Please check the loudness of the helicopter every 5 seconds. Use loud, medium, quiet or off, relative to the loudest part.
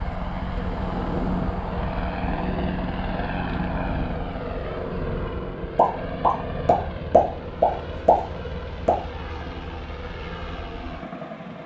loud, medium, medium.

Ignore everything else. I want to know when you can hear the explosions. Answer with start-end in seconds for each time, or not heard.
5.8-8.9.